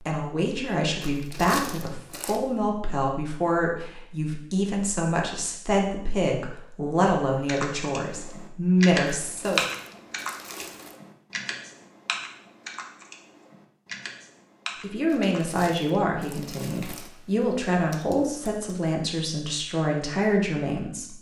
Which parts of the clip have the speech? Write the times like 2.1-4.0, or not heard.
0.0-9.7, 14.8-21.1.